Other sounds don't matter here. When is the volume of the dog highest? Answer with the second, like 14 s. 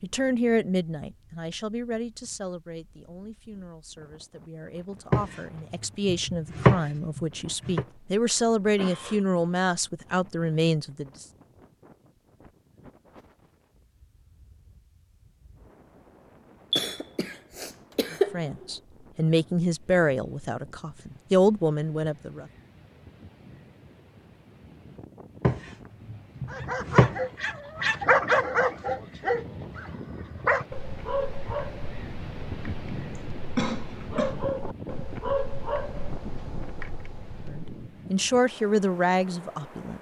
28 s.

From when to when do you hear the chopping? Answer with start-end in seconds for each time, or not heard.
5.1-7.8, 25.4-27.1.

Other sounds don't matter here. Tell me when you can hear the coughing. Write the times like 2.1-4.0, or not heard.
7.8-9.2, 16.7-18.6, 33.1-34.4.